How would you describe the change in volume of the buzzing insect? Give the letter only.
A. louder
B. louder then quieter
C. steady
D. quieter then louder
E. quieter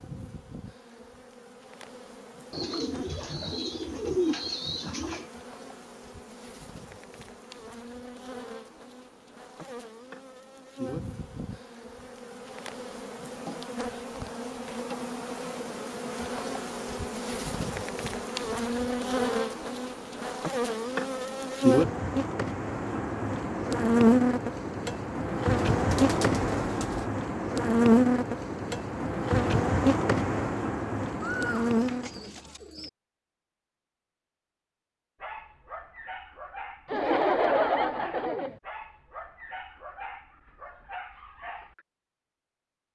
A.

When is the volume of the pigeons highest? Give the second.
4 s.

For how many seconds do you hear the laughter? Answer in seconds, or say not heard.
2 s.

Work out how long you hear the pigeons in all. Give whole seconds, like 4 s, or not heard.
6 s.